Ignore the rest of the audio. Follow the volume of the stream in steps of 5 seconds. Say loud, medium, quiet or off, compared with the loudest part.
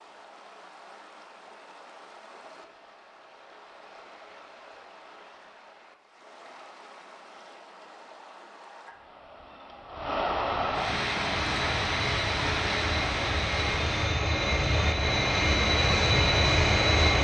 quiet, quiet, loud, off.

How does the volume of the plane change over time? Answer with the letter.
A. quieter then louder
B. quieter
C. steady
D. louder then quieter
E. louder
E.